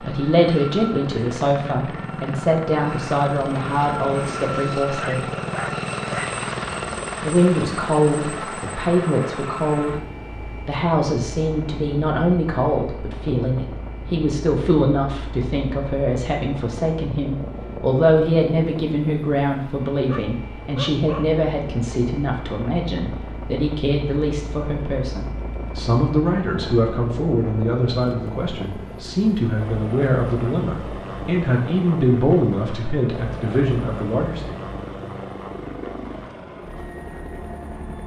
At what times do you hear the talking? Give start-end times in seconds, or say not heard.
0.0-5.2, 7.2-10.1, 10.7-34.6.